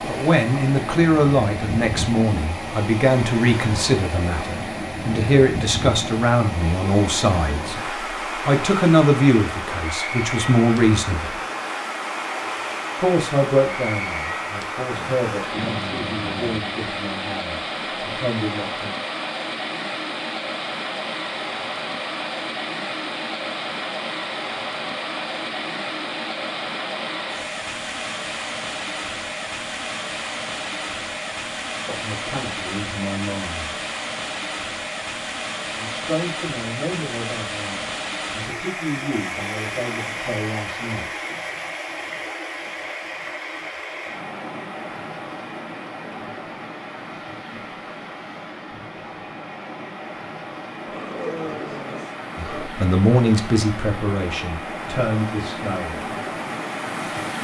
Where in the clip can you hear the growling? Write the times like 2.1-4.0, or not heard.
14.9-16.6, 50.9-52.7.